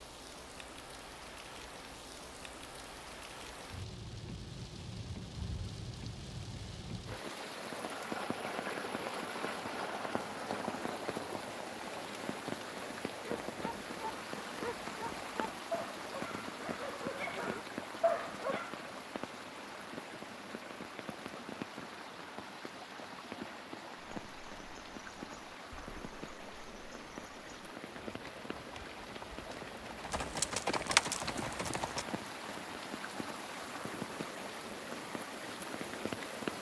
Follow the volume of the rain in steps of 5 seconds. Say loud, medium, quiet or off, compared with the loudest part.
medium, loud, loud, loud, medium, medium, loud, loud.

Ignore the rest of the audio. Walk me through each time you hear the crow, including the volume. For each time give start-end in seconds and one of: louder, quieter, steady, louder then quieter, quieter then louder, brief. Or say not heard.
not heard.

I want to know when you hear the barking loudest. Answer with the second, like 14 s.
18 s.